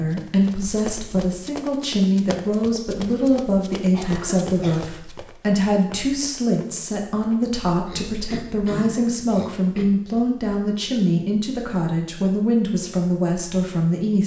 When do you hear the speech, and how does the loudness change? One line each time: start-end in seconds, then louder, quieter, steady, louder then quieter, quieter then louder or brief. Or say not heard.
0.0-14.2 steady.